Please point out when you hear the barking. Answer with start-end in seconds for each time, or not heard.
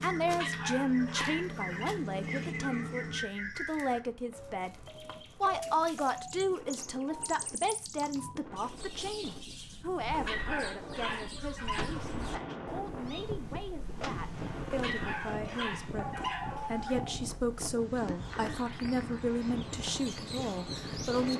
0.2-1.9, 10.1-12.2, 14.7-16.9.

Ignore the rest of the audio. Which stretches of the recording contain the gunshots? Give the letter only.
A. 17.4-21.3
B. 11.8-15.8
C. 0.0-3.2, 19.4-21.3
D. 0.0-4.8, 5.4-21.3
B.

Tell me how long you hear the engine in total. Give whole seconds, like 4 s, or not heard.
5 s.